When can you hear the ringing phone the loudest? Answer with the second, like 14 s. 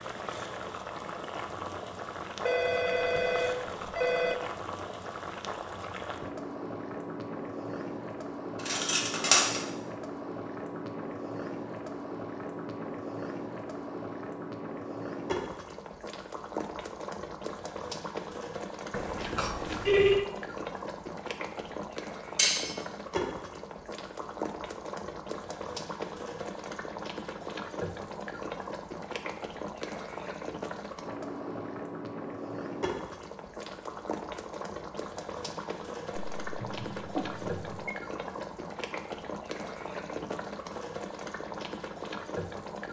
20 s.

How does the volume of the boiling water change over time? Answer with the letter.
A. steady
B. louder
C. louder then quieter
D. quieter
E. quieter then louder
A.